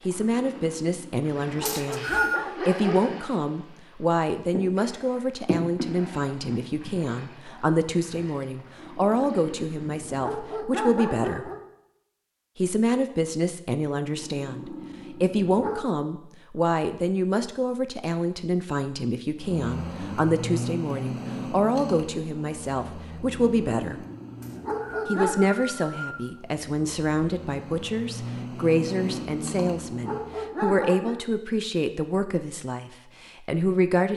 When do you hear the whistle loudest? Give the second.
2 s.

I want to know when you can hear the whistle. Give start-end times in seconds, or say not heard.
1.6-2.5, 24.4-26.3.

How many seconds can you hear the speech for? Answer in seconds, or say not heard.
32 s.